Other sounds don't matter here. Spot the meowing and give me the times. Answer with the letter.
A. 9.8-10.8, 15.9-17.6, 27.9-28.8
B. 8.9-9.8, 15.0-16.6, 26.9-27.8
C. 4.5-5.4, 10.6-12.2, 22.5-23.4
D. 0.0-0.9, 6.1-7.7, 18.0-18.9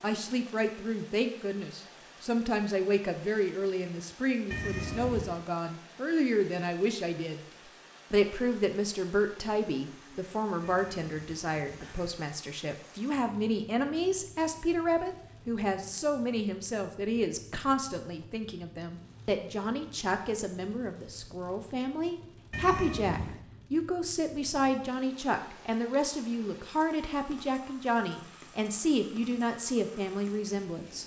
C.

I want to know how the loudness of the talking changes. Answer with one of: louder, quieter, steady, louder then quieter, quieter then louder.
steady.